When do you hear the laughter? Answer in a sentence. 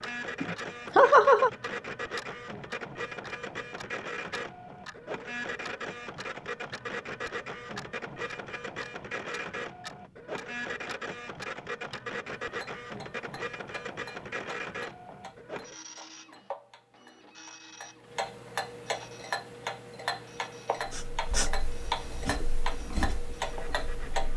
You can hear the laughter from 0.4 to 1.5 s.